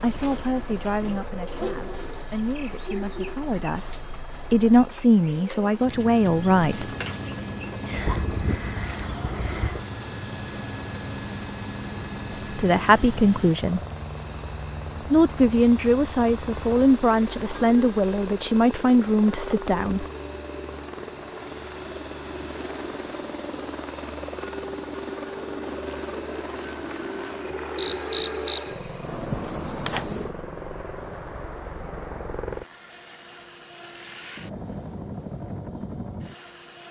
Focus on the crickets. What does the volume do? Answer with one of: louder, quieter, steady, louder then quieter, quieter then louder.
steady.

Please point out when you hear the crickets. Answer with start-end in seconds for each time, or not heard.
0.0-30.4.